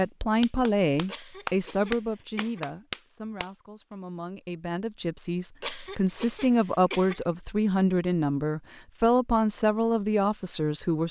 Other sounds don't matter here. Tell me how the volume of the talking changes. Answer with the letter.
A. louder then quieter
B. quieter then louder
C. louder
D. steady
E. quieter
B.